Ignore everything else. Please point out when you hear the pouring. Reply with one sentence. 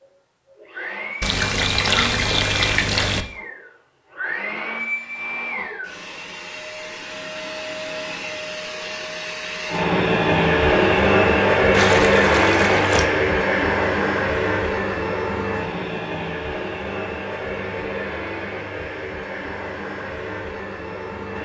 You can hear the pouring from 1.2 to 3.2 s and from 11.7 to 13.1 s.